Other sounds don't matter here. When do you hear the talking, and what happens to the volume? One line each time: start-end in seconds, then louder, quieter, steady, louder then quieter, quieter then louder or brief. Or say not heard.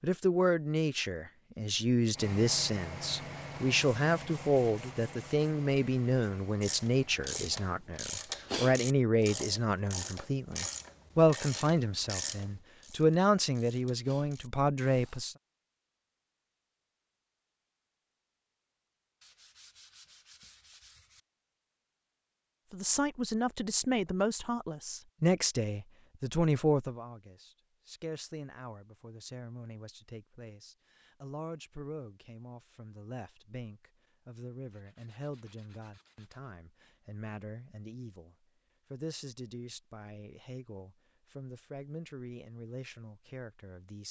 0.0-15.3 steady
22.7-44.0 quieter.